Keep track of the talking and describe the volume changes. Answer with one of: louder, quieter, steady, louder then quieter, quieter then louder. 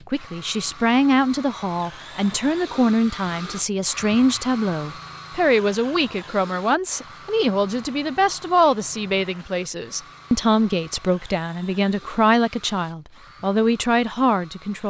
steady.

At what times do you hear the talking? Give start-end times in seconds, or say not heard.
0.1-14.8.